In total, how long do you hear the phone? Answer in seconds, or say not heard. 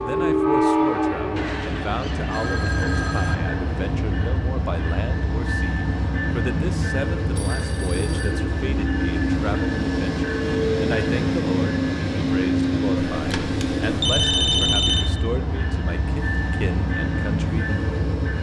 5 s.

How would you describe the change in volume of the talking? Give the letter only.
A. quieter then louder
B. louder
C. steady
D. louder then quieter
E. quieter
C.